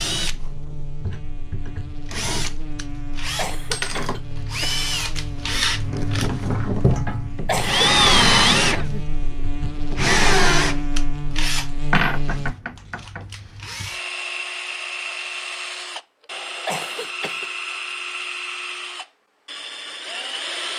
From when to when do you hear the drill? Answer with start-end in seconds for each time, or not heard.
0.0-20.7.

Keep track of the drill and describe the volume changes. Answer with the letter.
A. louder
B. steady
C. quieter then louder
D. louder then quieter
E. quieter
D.